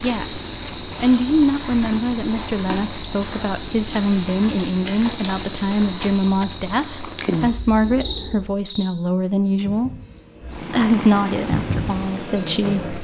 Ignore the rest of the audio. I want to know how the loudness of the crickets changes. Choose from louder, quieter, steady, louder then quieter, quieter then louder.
quieter then louder.